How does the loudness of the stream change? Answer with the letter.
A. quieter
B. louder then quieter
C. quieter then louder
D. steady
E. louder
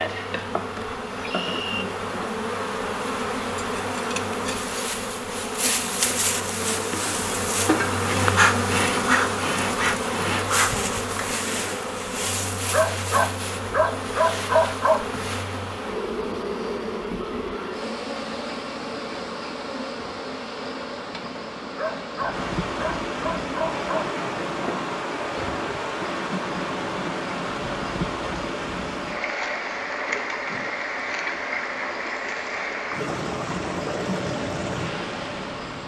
E.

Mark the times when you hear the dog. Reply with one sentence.
The dog can be heard from 12.7 to 15.1 s and from 21.8 to 24.1 s.